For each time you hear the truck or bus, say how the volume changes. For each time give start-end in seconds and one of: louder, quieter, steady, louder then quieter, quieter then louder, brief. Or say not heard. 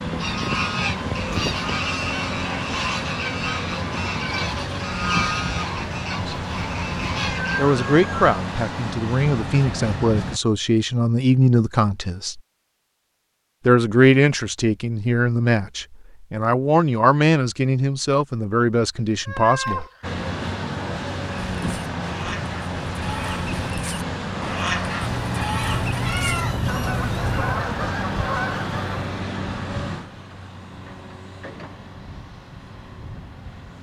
0.0-10.4 steady
20.0-33.7 quieter.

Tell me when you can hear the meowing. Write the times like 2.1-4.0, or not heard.
7.2-8.2, 18.9-20.1, 25.0-27.6.